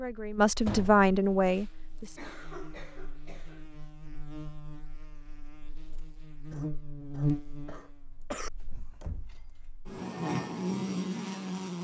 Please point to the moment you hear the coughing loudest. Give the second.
8 s.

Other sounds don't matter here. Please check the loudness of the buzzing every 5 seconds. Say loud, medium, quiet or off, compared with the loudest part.
quiet, medium, loud.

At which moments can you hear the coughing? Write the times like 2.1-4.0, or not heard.
2.1-3.6, 6.5-8.5.